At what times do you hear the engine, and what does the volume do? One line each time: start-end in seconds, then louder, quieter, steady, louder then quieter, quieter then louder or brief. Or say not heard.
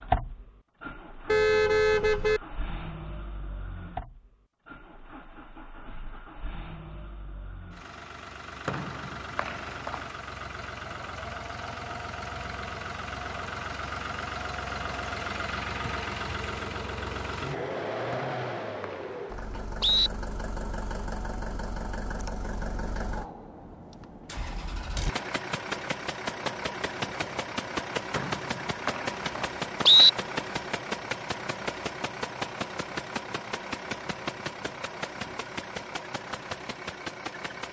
0.0-37.6 louder.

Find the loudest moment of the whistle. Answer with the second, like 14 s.
30 s.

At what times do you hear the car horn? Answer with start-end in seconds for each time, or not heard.
1.2-2.4.